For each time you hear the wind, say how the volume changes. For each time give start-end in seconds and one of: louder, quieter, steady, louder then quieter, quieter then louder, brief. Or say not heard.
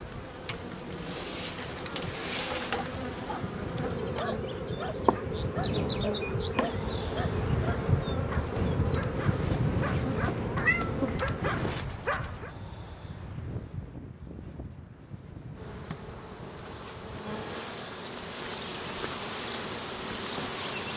0.0-17.6 louder then quieter.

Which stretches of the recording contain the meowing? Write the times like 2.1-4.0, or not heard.
9.8-11.2.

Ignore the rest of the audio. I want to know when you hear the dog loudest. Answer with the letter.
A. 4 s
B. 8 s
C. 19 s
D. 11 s
D.